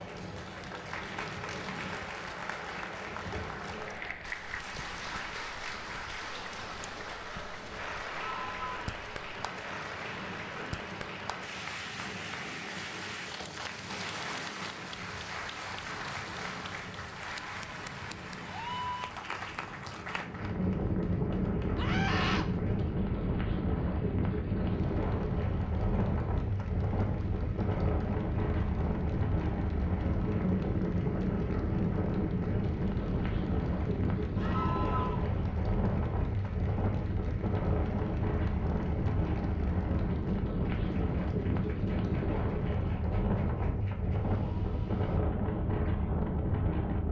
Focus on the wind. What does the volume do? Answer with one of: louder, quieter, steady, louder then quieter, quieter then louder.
louder.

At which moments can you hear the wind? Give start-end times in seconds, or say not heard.
0.0-47.0.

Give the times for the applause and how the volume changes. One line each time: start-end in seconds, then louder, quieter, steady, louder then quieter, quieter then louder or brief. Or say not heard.
0.0-45.2 quieter.